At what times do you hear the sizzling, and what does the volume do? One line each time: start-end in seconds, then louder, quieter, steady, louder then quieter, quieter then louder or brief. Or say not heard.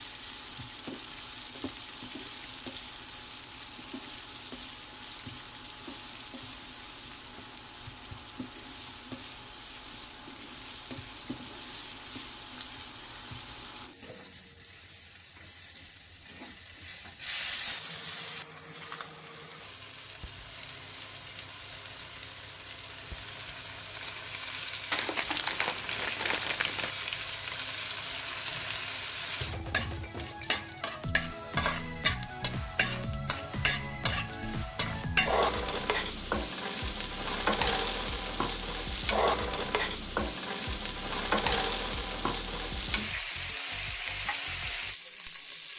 0.0-45.7 louder.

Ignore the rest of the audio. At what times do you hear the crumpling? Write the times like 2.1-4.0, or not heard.
24.9-26.9.